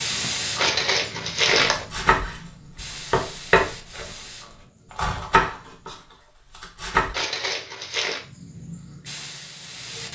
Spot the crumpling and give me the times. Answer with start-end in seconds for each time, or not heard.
0.6-1.9, 7.1-8.2.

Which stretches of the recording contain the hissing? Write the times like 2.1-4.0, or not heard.
0.0-6.2, 8.2-10.1.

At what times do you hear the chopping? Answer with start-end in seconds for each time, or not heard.
1.7-4.1, 5.0-7.2.